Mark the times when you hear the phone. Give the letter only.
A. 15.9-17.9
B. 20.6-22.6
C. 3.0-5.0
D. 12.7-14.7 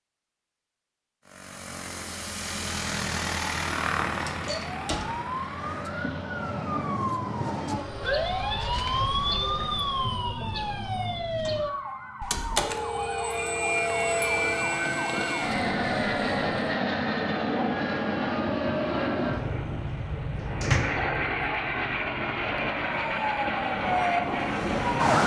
D.